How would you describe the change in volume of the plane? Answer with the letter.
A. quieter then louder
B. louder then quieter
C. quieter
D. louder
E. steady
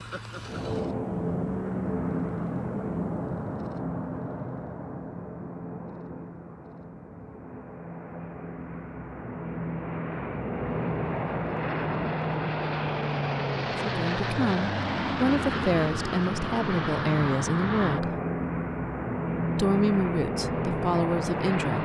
A.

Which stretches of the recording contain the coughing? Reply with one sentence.
You can't hear the coughing here.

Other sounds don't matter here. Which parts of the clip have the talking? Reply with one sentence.
You can hear the talking from 13.8 to 18.1 s and from 19.6 to 21.8 s.